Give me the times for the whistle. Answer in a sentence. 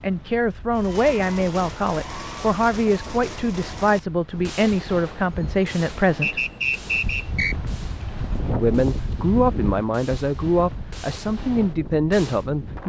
The whistle can be heard from 6.2 to 7.5 s.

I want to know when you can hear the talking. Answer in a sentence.
You can hear the talking from 0.0 to 6.5 s and from 8.5 to 12.8 s.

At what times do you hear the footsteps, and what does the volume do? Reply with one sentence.
You can't hear the footsteps here.